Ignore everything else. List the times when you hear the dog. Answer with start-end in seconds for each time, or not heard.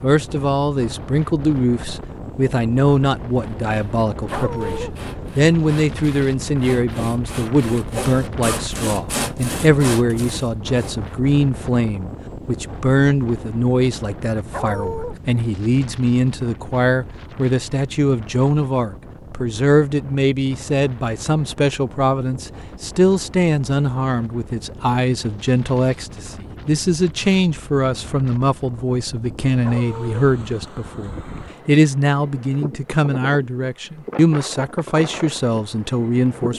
4.2-5.0, 14.5-15.2, 29.6-30.2.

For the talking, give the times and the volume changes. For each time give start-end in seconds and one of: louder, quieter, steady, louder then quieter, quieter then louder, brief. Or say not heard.
0.0-36.5 steady.